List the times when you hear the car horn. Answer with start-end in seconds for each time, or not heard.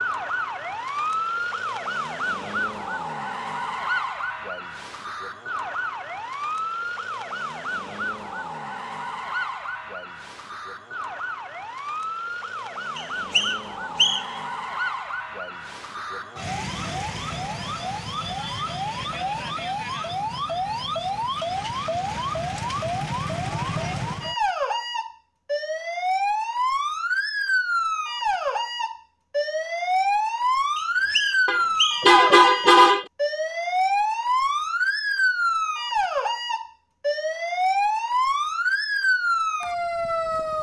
31.4-33.0.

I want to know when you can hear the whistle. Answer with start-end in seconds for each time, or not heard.
12.9-14.4, 30.8-32.1.